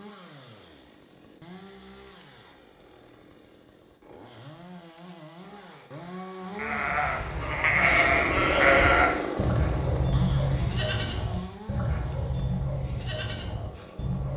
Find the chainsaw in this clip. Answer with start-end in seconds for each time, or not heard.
0.0-14.3.